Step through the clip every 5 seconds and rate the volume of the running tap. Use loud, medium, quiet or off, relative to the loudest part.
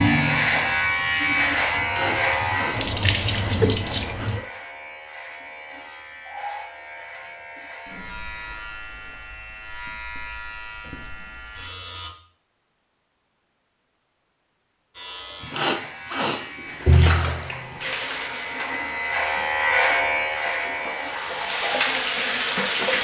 loud, off, off, loud, loud.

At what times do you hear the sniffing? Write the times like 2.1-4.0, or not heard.
1.8-4.5, 15.4-17.4.